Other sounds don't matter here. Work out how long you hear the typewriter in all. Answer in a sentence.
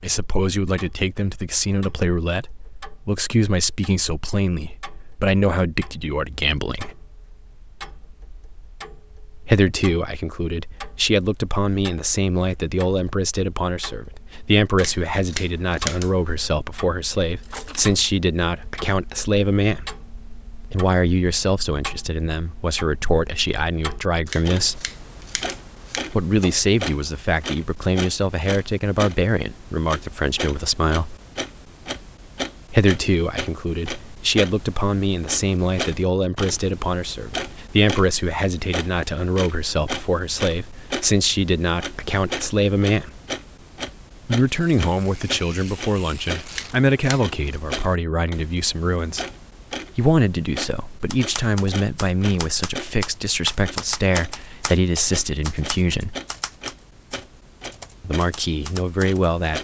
You can hear the typewriter for 8 seconds altogether.